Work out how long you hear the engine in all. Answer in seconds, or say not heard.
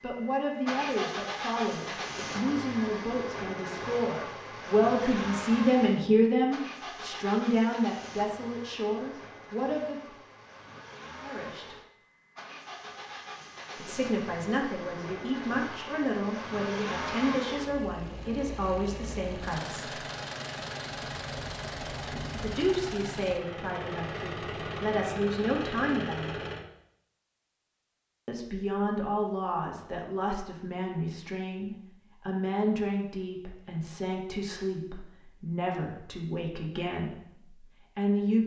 27 s.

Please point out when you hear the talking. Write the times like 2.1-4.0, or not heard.
0.0-10.0, 11.2-11.8, 13.8-19.9, 22.4-26.4, 28.2-38.4.